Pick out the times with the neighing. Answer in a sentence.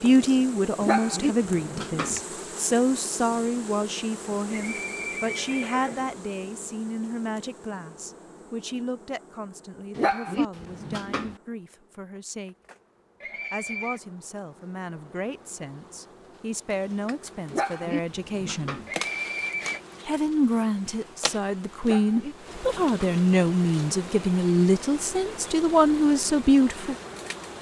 You can hear the neighing from 4.5 to 6.2 s, from 13.2 to 14.0 s and from 18.9 to 19.8 s.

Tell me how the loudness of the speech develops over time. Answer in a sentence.
The volume of the speech goes down, then up.